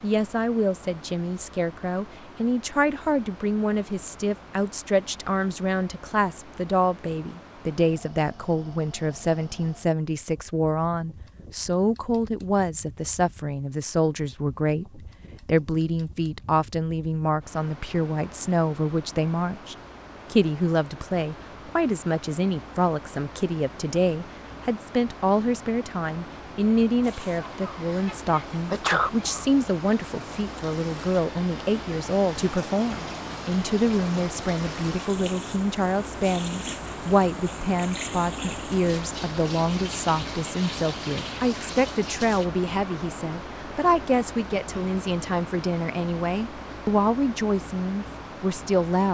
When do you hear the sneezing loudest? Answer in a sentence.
The loudest moment of the sneezing is at 29 seconds.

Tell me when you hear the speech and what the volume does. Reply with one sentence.
The speech can be heard from 0.0 to 49.0 s, at a steady volume.